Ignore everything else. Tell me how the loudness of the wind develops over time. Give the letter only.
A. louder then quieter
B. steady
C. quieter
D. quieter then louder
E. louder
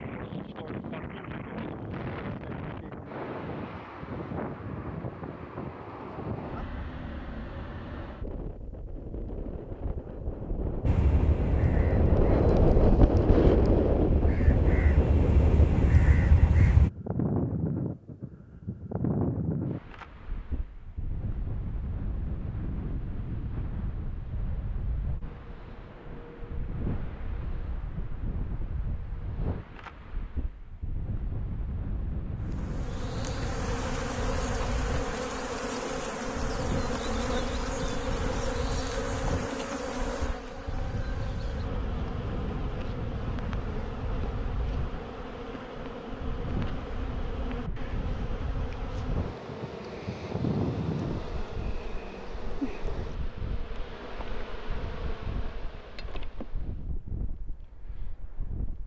A.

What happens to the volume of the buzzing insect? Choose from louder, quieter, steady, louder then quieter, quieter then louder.
quieter.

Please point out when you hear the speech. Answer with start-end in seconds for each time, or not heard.
not heard.